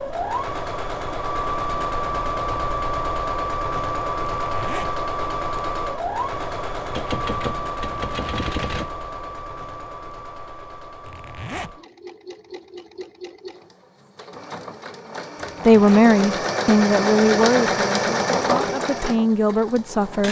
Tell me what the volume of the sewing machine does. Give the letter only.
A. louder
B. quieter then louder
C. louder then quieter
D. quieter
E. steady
B.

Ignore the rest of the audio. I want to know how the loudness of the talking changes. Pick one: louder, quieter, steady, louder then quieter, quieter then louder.
quieter then louder.